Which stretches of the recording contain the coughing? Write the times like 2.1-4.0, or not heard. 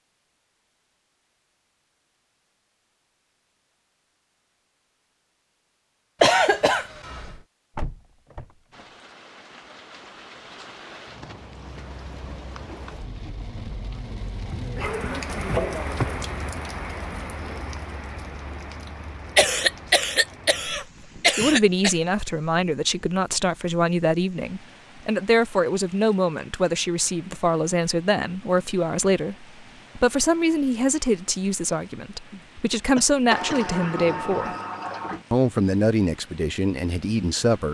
6.2-7.3, 19.4-21.9, 33.0-33.6.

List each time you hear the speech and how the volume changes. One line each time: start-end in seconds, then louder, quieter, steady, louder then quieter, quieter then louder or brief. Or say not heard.
21.4-34.5 steady
35.3-37.6 brief.